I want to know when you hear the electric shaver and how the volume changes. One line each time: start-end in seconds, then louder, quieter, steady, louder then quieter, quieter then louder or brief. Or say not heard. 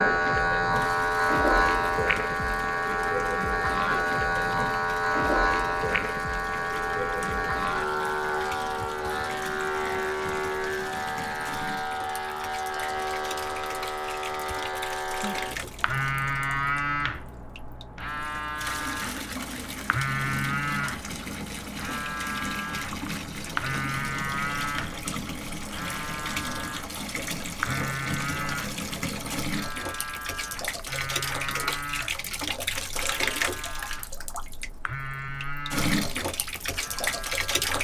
0.0-37.7 quieter.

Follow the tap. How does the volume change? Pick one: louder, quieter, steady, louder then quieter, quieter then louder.
louder.